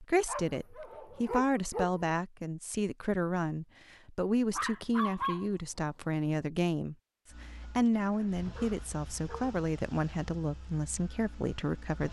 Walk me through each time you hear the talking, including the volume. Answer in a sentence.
You can hear the talking from 0.0 to 12.0 s, at a steady volume.